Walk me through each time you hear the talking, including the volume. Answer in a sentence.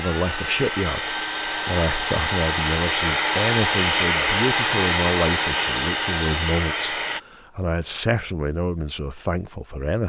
You can hear the talking from 0.0 to 10.0 s, at a steady volume.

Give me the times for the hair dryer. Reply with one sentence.
You can hear the hair dryer from 0.0 to 7.2 s.